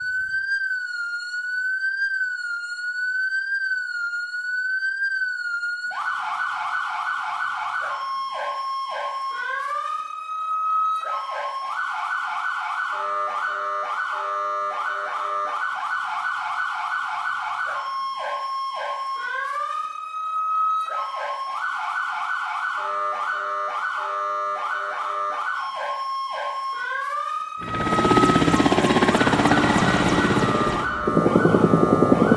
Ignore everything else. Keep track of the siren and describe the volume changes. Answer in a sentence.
The loudness of the siren stays about the same.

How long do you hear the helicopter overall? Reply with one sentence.
The helicopter can be heard for 5 seconds in total.